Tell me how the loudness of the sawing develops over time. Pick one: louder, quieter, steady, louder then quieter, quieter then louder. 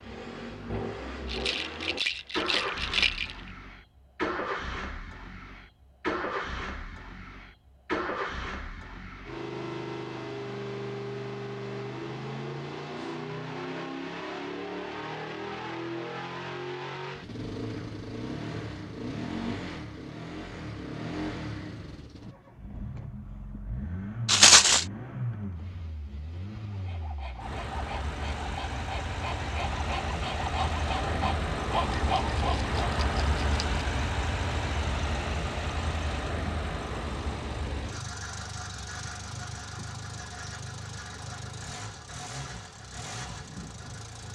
louder.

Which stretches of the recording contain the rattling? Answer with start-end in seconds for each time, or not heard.
1.2-3.4, 24.2-24.9, 32.1-33.6.